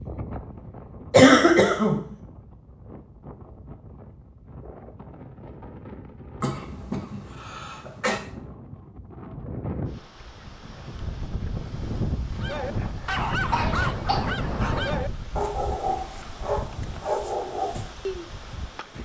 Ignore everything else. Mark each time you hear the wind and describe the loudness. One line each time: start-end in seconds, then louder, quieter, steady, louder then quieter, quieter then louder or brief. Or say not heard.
0.0-18.9 louder then quieter.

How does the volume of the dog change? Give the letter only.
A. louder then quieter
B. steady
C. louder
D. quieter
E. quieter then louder
B.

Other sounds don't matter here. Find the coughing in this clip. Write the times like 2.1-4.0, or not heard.
1.1-2.0, 6.4-8.2, 13.5-14.2.